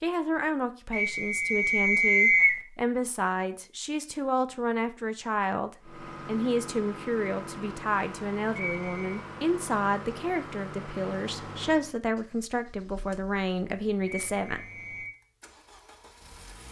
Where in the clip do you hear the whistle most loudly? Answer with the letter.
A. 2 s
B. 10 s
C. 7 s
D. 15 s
A.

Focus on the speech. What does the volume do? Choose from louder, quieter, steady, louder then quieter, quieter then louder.
steady.